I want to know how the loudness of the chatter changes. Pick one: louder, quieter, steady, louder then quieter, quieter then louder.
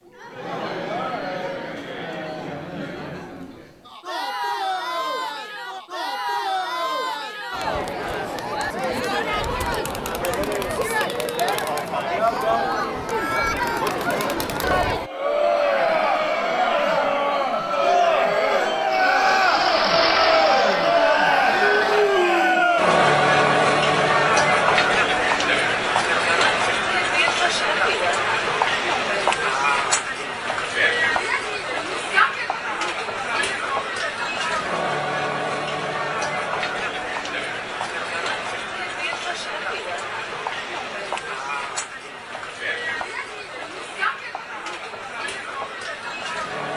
louder then quieter.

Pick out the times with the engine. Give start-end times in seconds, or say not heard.
18.9-22.0.